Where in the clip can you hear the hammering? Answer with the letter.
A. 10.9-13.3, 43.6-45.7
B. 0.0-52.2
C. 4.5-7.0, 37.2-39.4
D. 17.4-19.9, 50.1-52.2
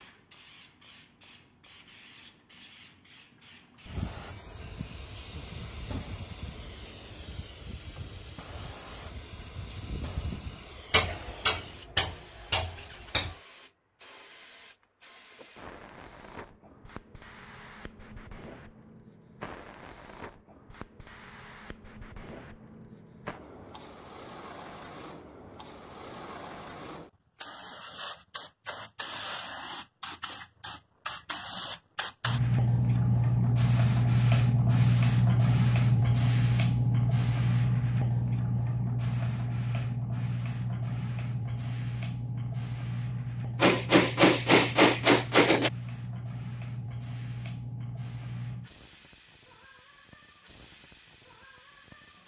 A.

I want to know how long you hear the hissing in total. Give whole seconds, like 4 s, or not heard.
52 s.